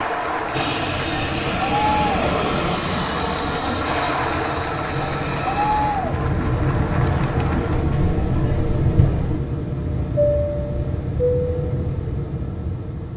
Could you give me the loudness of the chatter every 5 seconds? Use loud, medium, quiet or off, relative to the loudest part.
loud, loud, off.